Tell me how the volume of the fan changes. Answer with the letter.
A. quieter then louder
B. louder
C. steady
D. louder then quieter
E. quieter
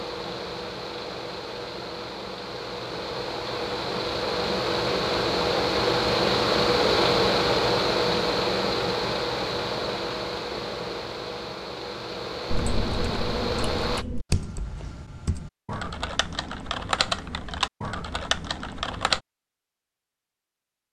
D.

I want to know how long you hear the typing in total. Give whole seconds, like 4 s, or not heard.
7 s.